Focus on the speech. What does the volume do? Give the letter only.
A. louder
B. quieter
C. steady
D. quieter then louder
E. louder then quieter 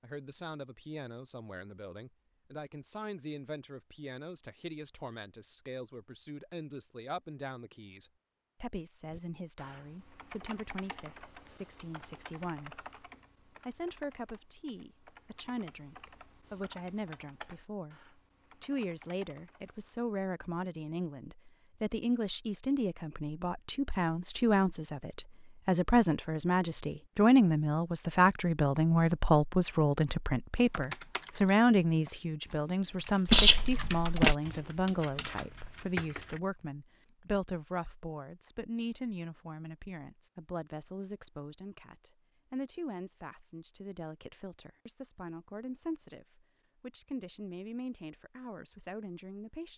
E.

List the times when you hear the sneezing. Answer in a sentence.
You can hear the sneezing from 33.2 to 34.4 s.